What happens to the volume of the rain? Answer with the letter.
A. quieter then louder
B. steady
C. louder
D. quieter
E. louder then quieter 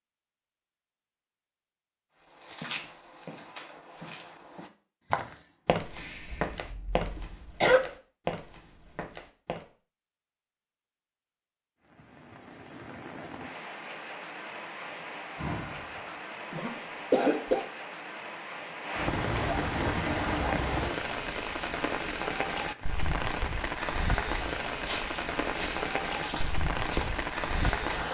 C.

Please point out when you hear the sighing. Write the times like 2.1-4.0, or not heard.
5.0-6.5, 15.3-16.4.